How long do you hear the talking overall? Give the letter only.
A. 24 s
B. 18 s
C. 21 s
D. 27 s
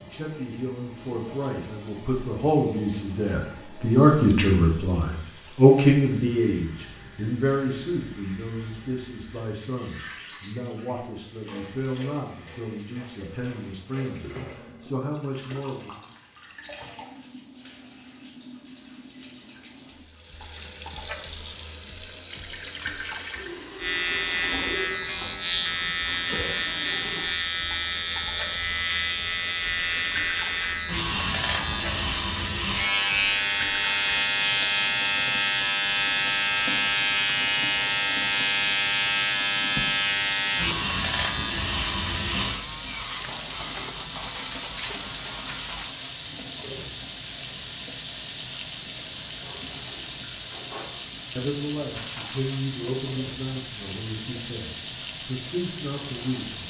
C.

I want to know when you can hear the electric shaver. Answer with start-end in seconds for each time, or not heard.
23.8-45.9.